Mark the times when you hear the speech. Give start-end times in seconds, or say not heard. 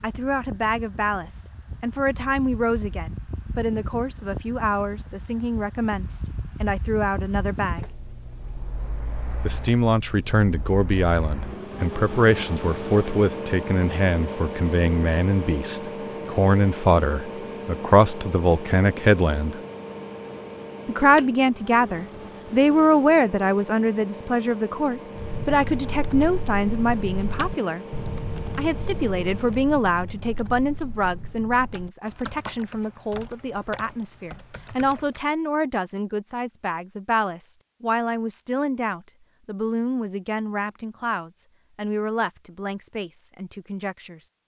0.0-7.8, 9.4-19.6, 20.9-27.9, 28.6-44.2.